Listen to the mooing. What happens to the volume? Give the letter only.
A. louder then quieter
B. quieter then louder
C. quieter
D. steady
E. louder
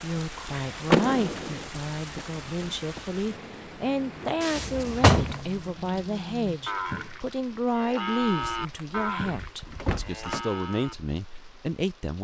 A.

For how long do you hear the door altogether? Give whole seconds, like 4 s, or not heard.
4 s.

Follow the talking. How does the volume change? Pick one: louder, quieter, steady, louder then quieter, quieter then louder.
steady.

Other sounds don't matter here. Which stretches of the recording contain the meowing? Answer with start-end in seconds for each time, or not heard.
not heard.